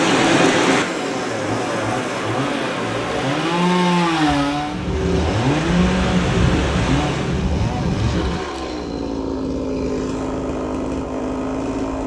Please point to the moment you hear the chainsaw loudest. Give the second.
4 s.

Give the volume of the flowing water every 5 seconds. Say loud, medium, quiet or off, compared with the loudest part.
loud, loud, off.